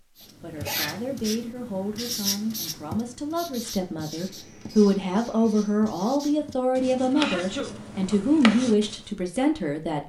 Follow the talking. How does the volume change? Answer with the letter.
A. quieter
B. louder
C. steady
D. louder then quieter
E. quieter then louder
B.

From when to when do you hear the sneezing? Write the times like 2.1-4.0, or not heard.
0.6-1.0, 7.2-7.8.